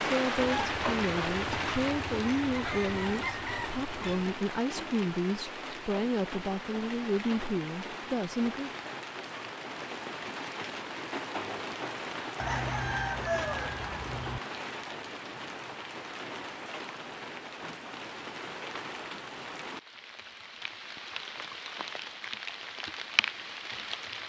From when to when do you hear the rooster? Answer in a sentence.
The rooster can be heard from 0.3 to 4.3 s and from 12.3 to 14.4 s.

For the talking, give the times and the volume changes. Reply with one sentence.
The talking can be heard from 0.0 to 8.7 s, at a steady volume.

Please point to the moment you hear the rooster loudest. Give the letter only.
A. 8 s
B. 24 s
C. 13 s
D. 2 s
C.